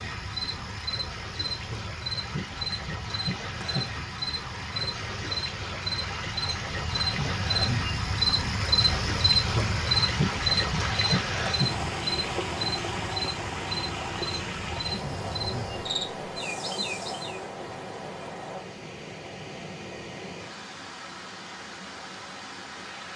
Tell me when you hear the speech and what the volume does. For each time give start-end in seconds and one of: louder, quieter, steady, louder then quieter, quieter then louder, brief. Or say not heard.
not heard.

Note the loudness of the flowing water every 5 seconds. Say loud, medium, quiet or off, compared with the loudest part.
medium, loud, loud, medium, medium.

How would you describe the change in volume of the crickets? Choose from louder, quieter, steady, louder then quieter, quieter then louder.
louder then quieter.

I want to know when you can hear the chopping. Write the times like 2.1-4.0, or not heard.
not heard.